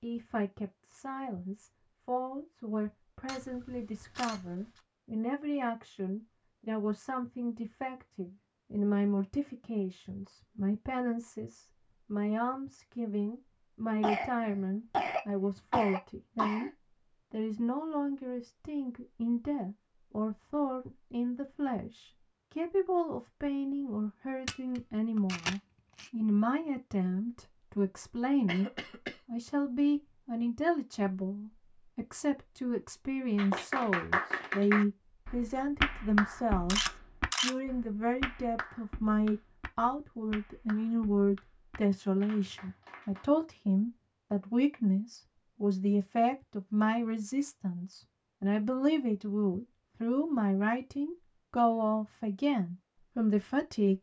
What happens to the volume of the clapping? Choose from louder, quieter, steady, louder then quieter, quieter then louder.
quieter.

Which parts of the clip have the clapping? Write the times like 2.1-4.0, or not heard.
33.4-43.3.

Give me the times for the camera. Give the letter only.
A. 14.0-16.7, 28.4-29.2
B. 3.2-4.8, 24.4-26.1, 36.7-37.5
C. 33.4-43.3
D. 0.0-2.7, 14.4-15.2
B.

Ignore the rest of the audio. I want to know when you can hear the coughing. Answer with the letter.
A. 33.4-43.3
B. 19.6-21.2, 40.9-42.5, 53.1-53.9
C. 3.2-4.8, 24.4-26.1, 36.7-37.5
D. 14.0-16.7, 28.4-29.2
D.